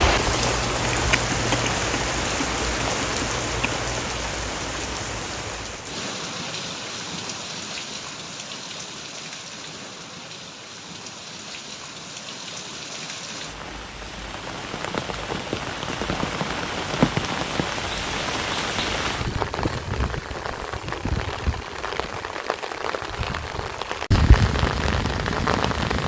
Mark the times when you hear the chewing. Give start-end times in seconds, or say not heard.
0.1-4.2.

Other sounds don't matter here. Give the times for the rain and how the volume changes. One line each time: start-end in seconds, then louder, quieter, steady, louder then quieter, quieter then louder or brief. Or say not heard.
0.0-26.0 quieter then louder.